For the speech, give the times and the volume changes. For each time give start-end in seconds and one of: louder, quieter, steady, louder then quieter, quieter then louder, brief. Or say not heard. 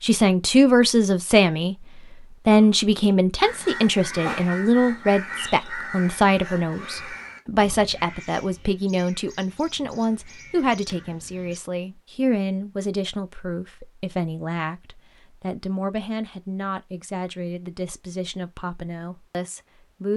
0.0-1.8 brief
2.5-20.1 quieter.